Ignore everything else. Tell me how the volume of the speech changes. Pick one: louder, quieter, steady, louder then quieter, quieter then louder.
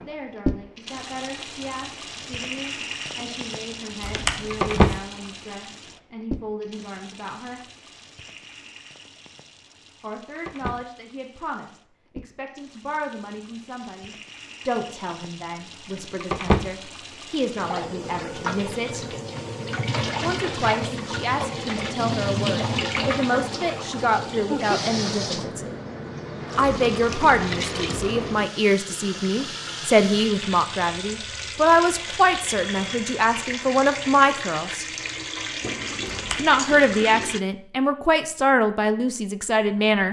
louder.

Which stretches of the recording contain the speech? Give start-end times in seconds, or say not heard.
0.1-7.6, 10.0-19.1, 20.2-25.8, 26.6-34.9, 36.4-40.0.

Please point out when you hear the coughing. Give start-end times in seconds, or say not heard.
4.0-5.0, 36.0-36.6.